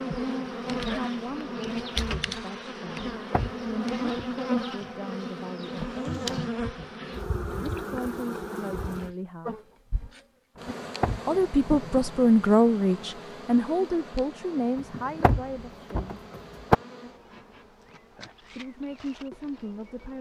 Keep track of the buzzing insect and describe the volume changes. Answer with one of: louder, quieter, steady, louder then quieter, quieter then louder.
quieter.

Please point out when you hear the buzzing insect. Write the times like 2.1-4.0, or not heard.
0.0-20.1.